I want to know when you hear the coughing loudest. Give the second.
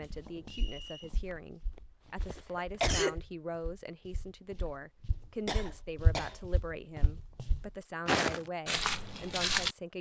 3 s.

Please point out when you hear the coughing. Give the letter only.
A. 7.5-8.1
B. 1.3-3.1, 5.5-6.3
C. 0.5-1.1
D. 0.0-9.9
B.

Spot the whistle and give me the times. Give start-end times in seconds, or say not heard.
0.5-1.1.